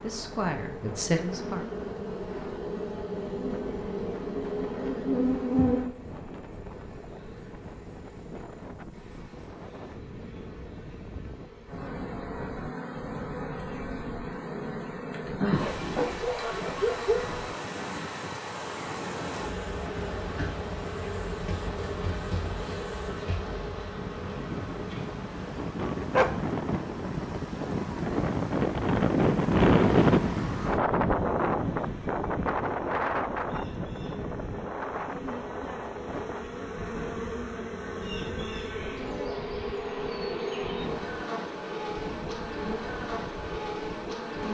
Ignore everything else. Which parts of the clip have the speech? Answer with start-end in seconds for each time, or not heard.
0.0-1.6.